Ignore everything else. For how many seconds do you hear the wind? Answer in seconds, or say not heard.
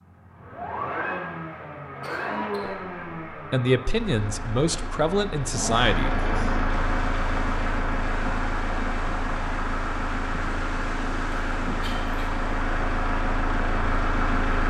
8 s.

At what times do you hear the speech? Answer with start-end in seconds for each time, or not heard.
2.6-6.2.